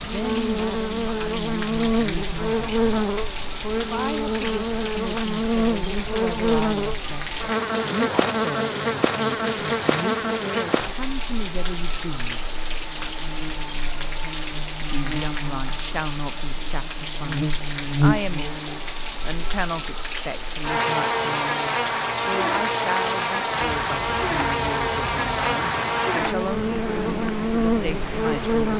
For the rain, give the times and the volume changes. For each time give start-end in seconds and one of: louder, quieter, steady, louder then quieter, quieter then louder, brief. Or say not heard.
0.0-28.7 steady.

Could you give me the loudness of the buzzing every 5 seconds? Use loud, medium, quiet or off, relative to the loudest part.
loud, loud, medium, loud, loud, loud.